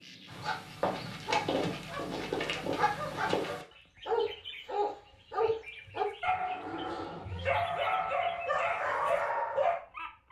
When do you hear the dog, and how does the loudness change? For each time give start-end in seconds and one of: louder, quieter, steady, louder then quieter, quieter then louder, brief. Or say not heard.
0.2-9.8 steady.